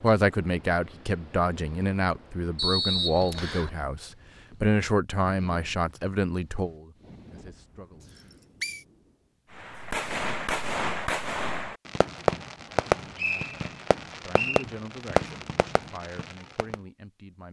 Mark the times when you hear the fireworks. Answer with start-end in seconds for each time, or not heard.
9.6-16.8.